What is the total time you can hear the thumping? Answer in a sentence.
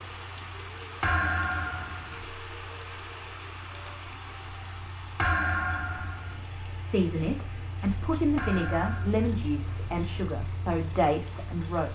You can hear the thumping for 3 seconds altogether.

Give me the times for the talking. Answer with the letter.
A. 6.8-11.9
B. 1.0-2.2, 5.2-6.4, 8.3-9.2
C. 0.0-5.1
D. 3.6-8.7
A.